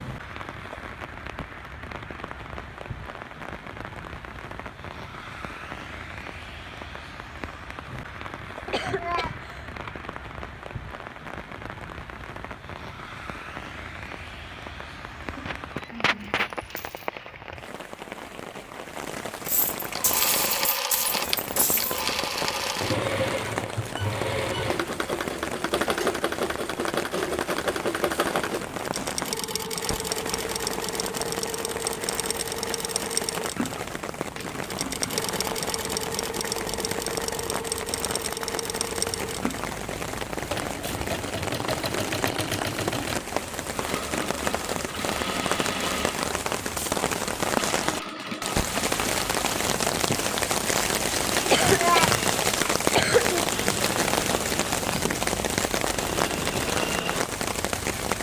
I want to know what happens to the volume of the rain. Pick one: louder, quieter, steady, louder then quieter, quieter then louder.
louder.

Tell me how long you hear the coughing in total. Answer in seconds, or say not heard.
3 s.